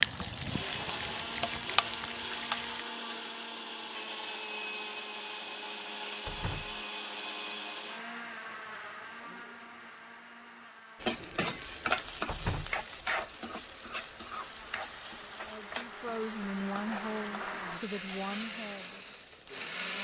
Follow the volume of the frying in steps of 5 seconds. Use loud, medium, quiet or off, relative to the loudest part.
loud, off, loud, quiet.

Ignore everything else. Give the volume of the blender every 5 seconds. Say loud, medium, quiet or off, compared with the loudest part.
loud, loud, quiet, loud.